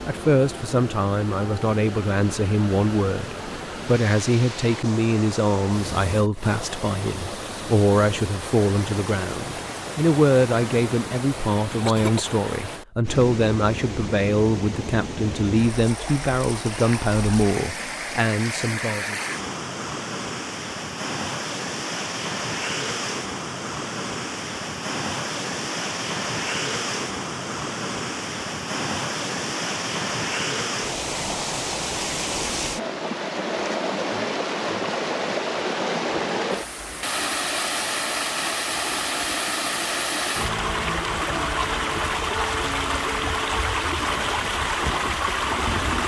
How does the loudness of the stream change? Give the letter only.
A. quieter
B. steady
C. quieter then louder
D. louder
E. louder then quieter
D.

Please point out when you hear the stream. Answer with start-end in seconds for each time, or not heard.
0.0-46.0.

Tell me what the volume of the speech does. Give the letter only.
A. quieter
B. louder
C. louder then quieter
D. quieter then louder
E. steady
E.